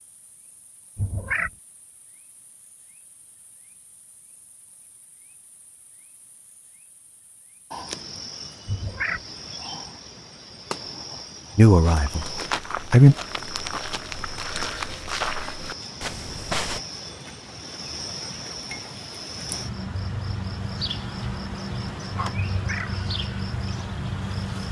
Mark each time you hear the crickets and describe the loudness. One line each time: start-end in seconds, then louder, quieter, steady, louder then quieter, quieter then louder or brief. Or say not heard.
0.0-24.6 louder.